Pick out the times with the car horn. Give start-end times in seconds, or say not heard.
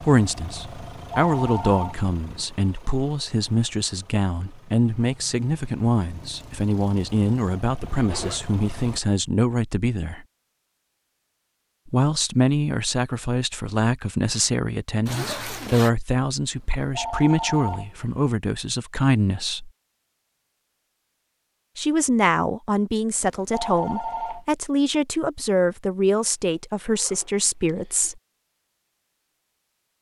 not heard.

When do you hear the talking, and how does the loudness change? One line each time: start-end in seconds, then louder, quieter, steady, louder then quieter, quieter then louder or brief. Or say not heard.
0.0-10.2 steady
11.8-19.7 steady
21.8-28.1 steady.